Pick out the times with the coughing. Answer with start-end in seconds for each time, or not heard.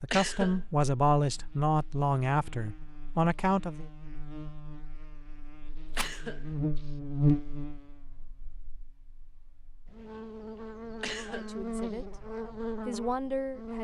0.1-0.7, 6.0-6.9, 11.0-12.0.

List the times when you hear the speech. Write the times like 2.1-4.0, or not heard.
0.0-3.9, 11.2-13.7.